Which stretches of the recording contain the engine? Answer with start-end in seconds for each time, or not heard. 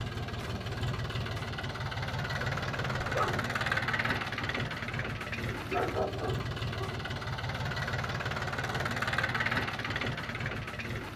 0.0-11.1.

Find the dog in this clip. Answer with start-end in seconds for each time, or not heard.
2.4-3.5, 5.7-7.0.